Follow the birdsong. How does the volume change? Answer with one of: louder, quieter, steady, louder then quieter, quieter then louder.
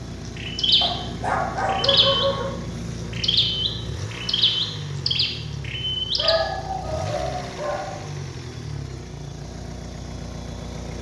steady.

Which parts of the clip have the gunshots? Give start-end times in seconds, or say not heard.
not heard.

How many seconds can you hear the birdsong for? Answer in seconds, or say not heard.
6 s.